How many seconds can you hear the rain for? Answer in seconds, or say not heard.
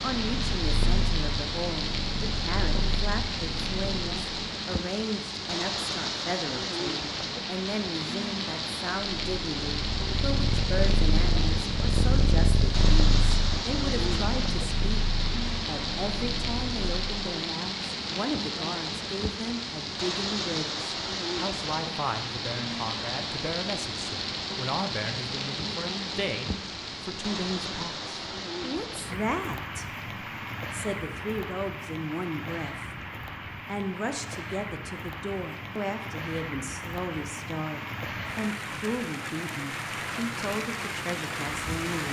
42 s.